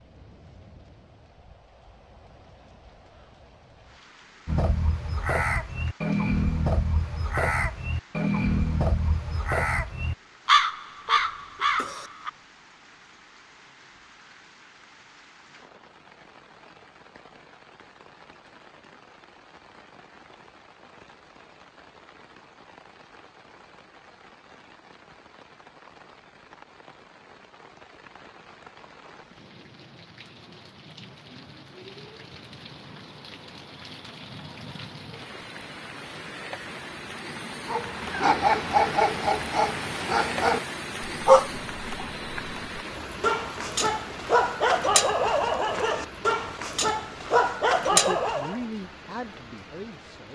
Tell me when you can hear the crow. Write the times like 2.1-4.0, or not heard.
4.5-12.3.